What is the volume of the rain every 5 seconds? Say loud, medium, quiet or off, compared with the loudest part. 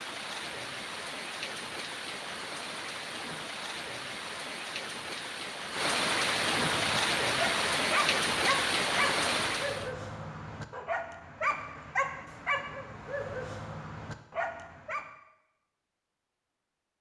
medium, loud, off, off.